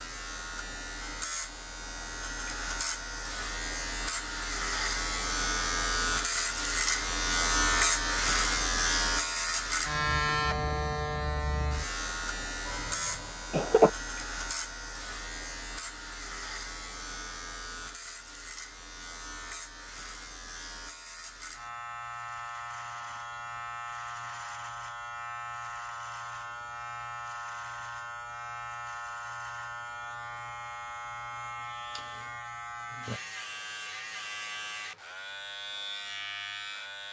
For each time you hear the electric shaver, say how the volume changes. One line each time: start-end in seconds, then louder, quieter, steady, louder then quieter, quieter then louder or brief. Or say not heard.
0.0-37.0 quieter.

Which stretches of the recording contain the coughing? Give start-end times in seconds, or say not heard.
12.7-13.9.